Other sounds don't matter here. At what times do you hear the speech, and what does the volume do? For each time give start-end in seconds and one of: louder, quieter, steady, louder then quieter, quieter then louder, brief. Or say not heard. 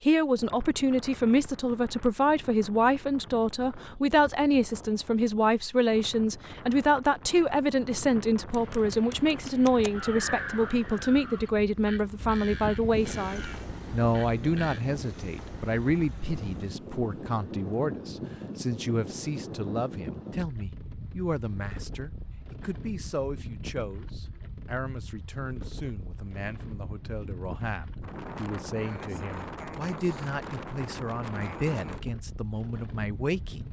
0.1-33.6 quieter.